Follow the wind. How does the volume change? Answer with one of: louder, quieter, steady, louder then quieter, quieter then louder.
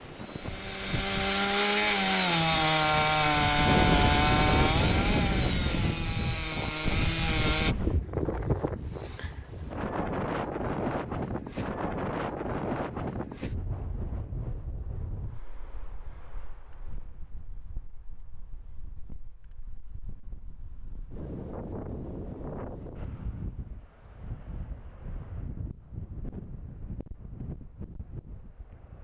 quieter.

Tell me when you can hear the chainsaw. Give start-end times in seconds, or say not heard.
0.0-7.8.